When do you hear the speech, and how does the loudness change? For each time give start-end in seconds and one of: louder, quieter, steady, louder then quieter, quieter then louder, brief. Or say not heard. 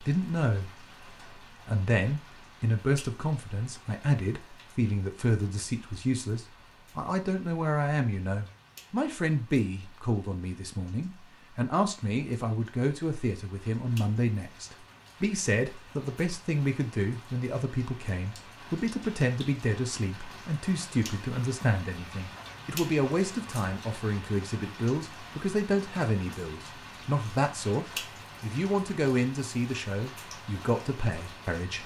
0.0-0.7 brief
1.6-31.8 steady.